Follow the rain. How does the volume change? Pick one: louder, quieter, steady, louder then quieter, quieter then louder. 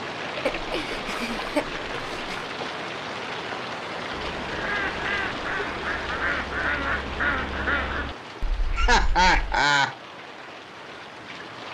quieter.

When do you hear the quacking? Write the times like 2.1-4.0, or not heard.
4.3-9.6.